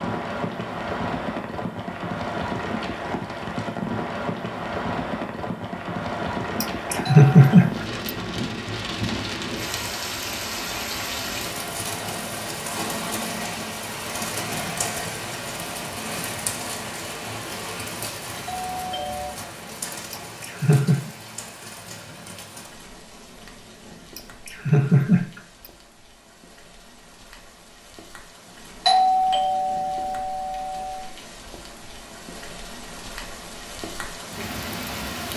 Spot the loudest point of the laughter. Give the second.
7 s.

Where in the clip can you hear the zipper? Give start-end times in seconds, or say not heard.
not heard.